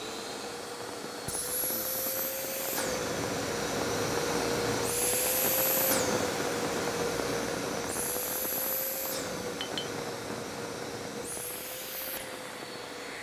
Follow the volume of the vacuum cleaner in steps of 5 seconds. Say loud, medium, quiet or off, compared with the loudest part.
loud, loud, medium.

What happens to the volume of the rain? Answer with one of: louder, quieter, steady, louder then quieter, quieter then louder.
louder then quieter.